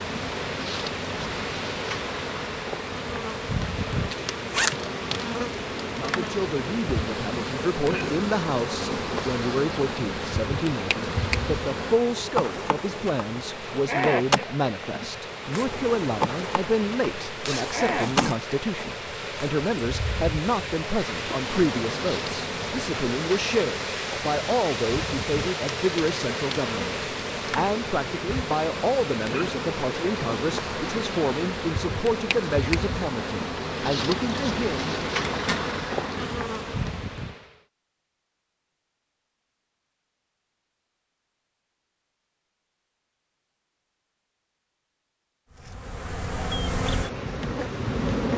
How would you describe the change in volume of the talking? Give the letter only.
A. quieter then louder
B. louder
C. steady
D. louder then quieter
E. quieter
C.